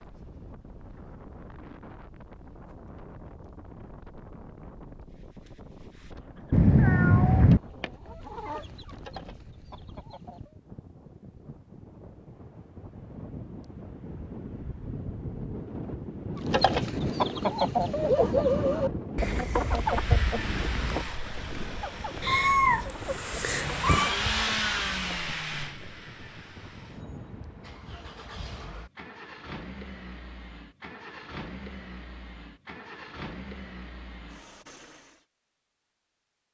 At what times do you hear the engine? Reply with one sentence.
You can hear the engine from 19.6 to 35.2 s.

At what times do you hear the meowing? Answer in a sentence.
You can hear the meowing from 6.5 to 7.6 s and from 22.2 to 24.1 s.